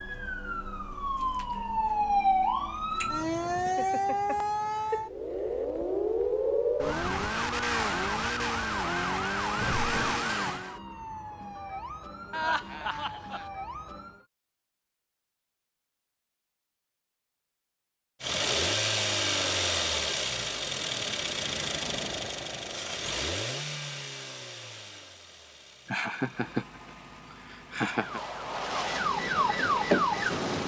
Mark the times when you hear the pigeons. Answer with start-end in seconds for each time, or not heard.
not heard.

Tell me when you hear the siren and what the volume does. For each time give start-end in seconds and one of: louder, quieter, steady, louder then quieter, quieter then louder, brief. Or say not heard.
0.0-14.2 quieter
27.9-30.6 brief.